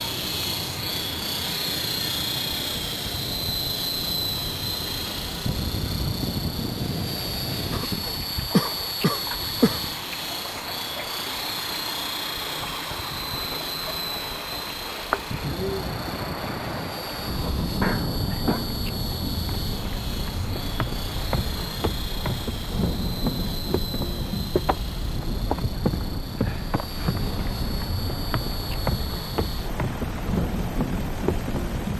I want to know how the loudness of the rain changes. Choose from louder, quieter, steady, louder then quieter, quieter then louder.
louder.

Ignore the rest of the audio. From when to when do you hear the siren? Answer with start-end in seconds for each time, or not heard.
not heard.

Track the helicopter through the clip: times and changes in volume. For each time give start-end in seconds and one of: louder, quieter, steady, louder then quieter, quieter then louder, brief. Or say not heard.
0.0-31.9 quieter.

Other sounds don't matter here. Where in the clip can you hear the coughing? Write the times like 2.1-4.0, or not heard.
7.7-9.8, 17.8-18.6.